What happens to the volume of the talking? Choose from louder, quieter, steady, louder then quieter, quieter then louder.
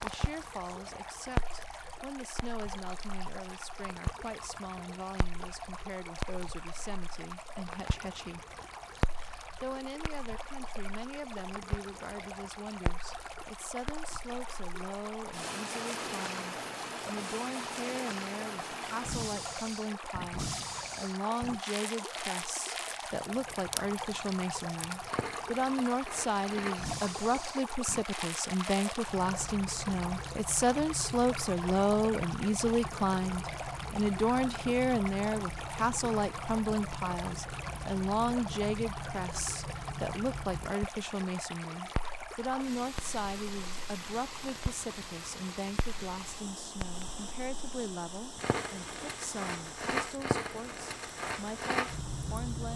louder then quieter.